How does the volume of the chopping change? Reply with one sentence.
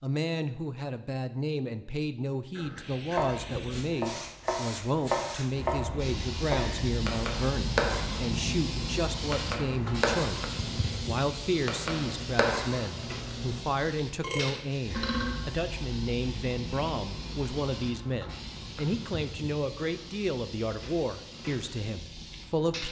The volume of the chopping stays about the same.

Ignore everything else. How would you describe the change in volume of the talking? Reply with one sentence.
The loudness of the talking stays about the same.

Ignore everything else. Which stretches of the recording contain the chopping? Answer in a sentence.
The chopping can be heard from 3.1 to 13.6 s.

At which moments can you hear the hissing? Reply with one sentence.
The hissing can be heard from 2.5 to 22.8 s.